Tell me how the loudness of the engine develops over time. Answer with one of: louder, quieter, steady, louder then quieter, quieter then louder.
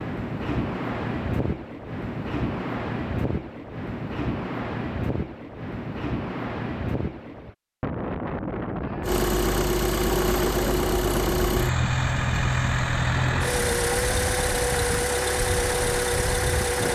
steady.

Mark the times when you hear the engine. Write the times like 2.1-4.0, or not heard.
9.0-16.8.